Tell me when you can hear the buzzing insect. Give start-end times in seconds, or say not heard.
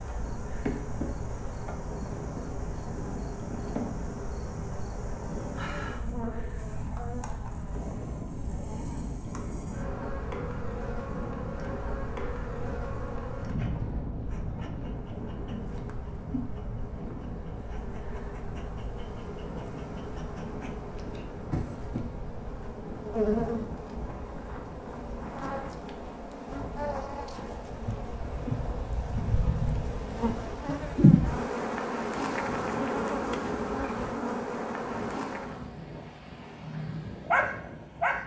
0.0-35.7.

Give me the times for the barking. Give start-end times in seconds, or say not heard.
36.9-38.2.